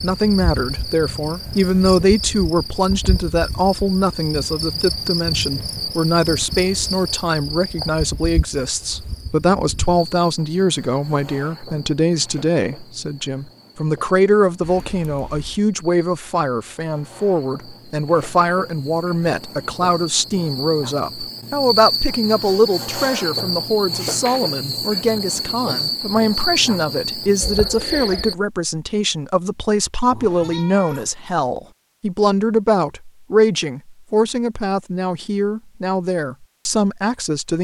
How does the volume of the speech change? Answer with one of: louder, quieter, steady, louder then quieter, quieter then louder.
steady.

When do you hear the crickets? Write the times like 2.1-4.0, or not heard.
0.0-28.4.